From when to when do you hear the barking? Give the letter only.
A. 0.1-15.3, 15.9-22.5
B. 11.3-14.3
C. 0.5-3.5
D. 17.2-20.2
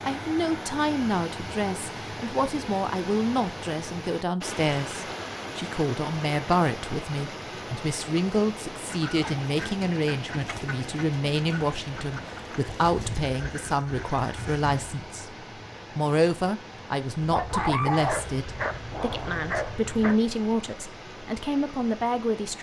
D.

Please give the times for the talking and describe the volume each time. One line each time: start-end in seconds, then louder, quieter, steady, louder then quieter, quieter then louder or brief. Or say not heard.
0.1-15.3 steady
15.9-22.5 quieter then louder.